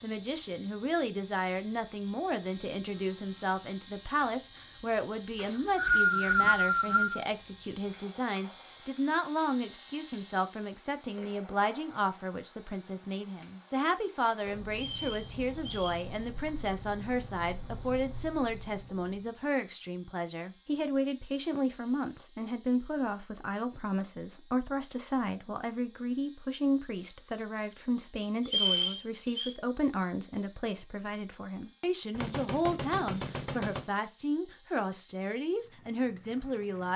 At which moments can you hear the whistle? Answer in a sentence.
The whistle can be heard from 5.3 to 7.2 s, from 14.8 to 16.0 s and from 28.4 to 29.6 s.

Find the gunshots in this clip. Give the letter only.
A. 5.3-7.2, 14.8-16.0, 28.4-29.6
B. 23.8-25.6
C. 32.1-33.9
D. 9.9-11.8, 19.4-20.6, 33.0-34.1
C.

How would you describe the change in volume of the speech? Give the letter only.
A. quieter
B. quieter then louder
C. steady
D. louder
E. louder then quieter
C.